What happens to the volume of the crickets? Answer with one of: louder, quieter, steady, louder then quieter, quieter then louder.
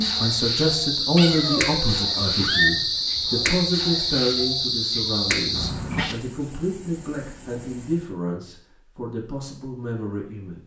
quieter.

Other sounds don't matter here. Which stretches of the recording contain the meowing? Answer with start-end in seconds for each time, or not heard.
1.1-2.7, 5.5-6.2.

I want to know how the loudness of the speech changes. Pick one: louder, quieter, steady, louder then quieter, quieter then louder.
quieter.